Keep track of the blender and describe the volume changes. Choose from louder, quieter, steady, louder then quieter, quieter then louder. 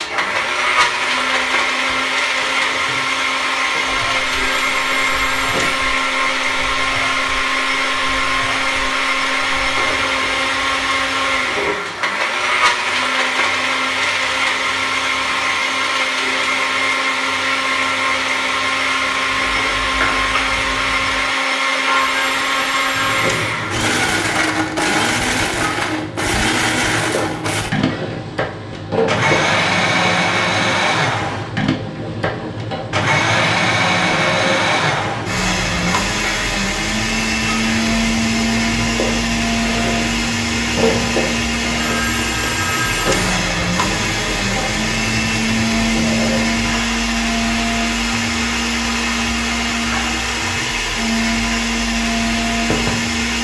steady.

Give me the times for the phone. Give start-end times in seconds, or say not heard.
4.5-5.8, 22.0-23.6, 41.8-43.4.